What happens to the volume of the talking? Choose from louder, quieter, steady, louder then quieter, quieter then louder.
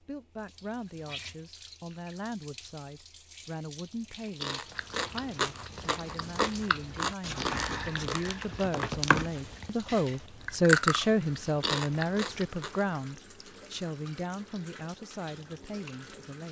louder then quieter.